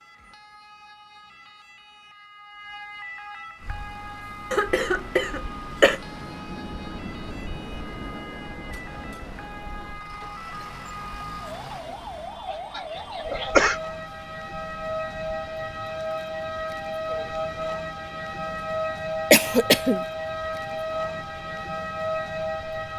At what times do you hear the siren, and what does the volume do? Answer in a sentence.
You can hear the siren from 0.0 to 22.9 s, getting louder.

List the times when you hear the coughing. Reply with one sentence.
You can hear the coughing from 4.5 to 6.0 s, from 12.4 to 13.8 s and from 19.3 to 20.1 s.